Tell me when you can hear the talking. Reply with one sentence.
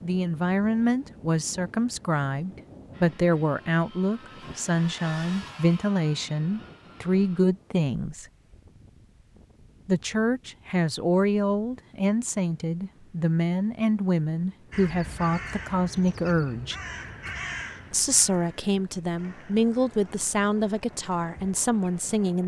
The talking can be heard from 0.0 to 8.2 s, from 9.8 to 16.8 s and from 17.9 to 22.4 s.